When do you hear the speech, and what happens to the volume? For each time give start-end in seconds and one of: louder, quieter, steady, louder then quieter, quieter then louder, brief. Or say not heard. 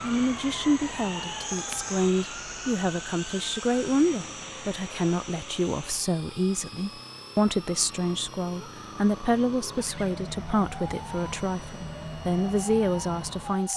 0.0-13.7 steady.